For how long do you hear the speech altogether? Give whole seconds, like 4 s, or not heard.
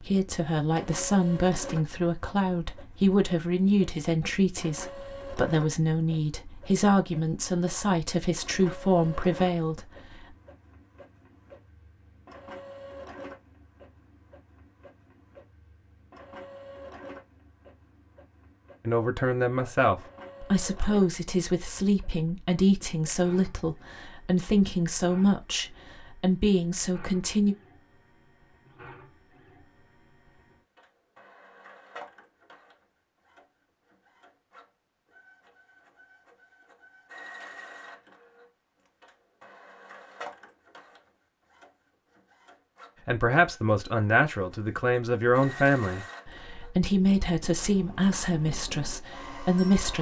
26 s.